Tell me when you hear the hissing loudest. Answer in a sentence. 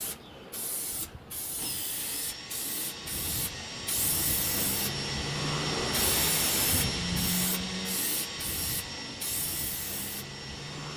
The loudest moment of the hissing is at 6 seconds.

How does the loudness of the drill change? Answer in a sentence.
The volume of the drill goes up, then down.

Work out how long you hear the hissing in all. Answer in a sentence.
You can hear the hissing for 11 seconds altogether.